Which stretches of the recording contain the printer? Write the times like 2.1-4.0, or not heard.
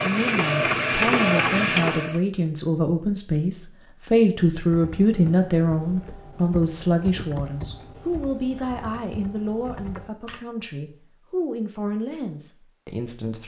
0.0-2.2.